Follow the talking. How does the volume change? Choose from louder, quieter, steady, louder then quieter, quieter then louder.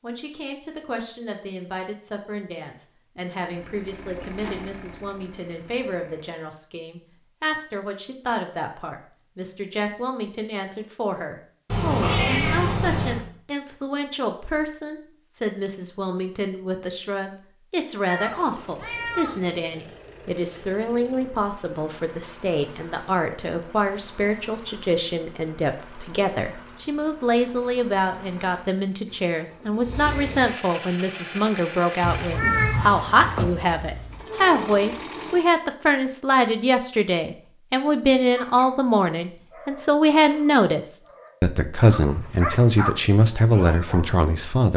louder.